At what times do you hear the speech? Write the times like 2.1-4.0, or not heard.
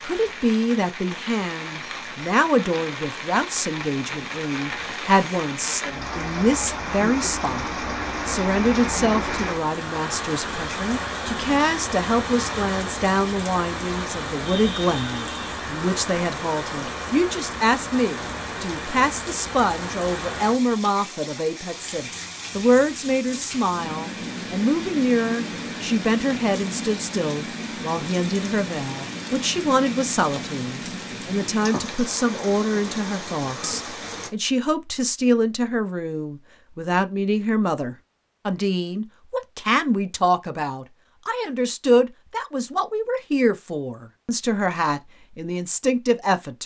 0.1-46.6.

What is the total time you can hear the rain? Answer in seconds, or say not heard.
34 s.